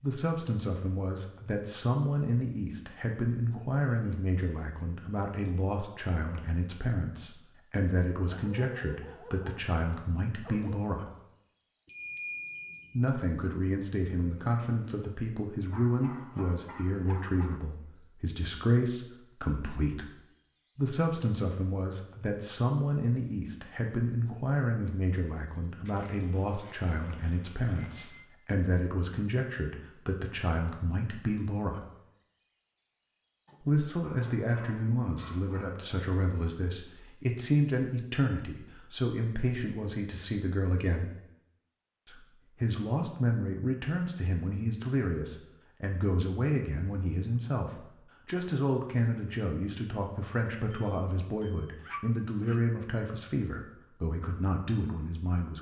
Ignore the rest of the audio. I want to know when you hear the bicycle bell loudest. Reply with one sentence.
The volume of the bicycle bell peaks at 12 seconds.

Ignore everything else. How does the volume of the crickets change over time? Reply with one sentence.
The loudness of the crickets stays about the same.